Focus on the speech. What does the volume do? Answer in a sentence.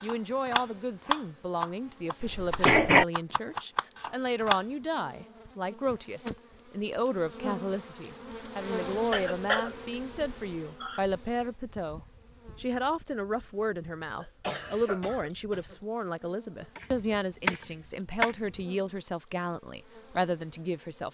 The loudness of the speech stays about the same.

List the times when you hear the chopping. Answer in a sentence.
The chopping can be heard from 0.0 to 4.6 s and from 16.8 to 18.6 s.